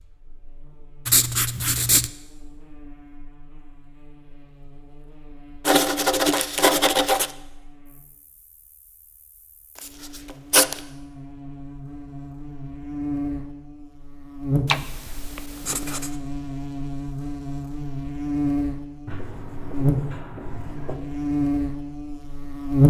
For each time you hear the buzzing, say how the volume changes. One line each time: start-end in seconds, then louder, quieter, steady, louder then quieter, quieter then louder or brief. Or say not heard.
0.0-22.8 louder.